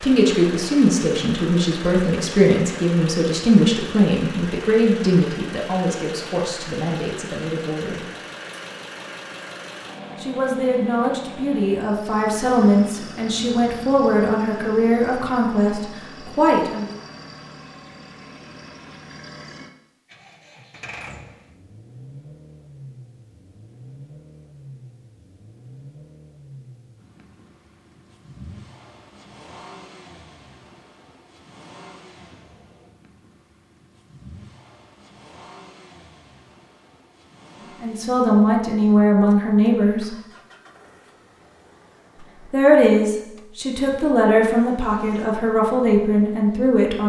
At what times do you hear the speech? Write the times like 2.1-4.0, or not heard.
0.0-8.1, 10.2-16.9, 37.8-40.1, 42.5-47.0.